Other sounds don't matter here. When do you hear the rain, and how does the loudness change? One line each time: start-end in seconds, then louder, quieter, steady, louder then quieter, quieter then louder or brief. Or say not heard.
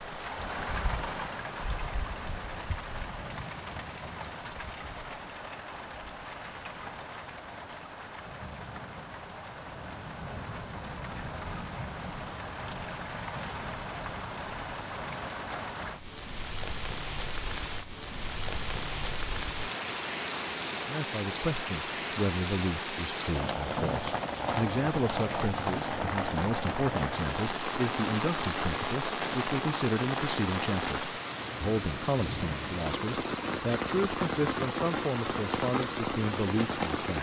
0.0-37.1 louder.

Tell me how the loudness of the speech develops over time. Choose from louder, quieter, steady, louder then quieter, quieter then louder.
steady.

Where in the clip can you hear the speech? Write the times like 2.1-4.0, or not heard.
20.7-37.1.